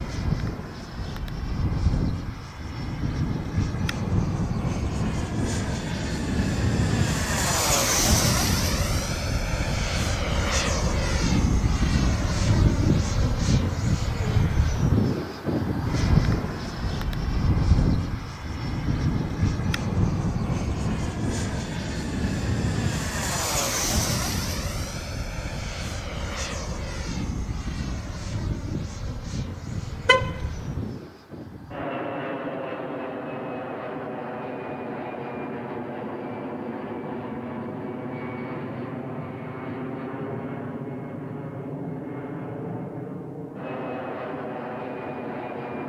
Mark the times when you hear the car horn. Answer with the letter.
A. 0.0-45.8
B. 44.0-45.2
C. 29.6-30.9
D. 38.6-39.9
C.